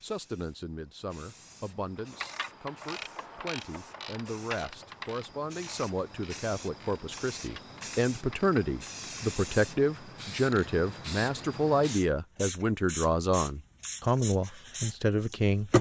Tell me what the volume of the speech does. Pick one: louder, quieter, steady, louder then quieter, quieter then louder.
louder.